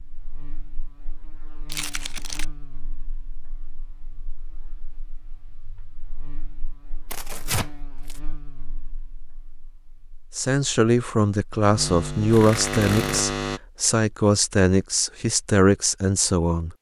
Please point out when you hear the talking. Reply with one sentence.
You can hear the talking from 10.3 to 16.7 s.